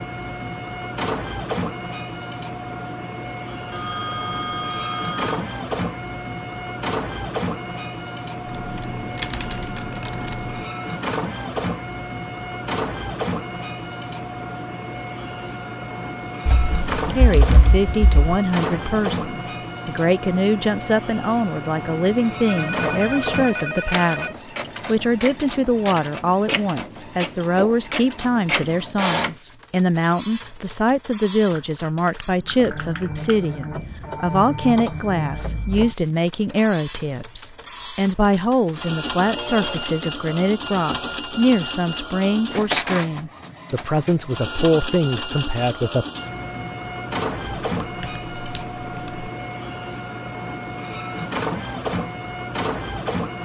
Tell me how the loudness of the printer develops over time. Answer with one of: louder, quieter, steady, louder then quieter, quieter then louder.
steady.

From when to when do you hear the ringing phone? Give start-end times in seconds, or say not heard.
3.7-5.5, 22.4-24.4, 39.4-40.0.